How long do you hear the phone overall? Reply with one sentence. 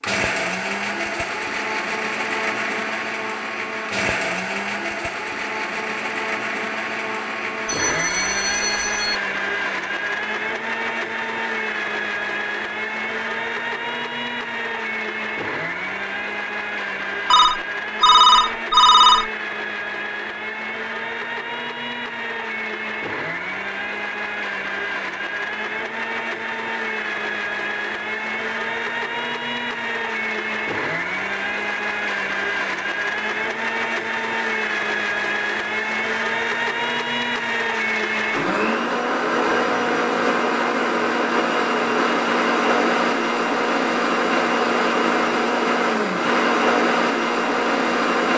The phone can be heard for 4 seconds in total.